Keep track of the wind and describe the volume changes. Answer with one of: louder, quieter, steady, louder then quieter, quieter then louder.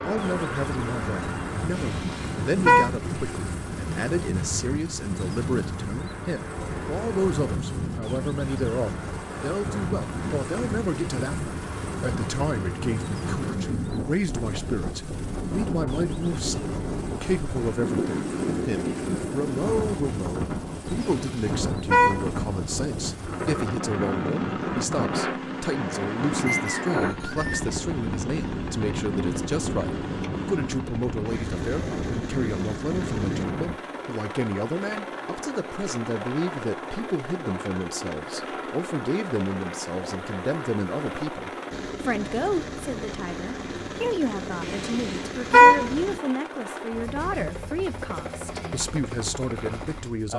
steady.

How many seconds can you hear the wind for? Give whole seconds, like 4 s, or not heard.
34 s.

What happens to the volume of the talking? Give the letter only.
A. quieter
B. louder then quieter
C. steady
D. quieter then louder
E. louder
C.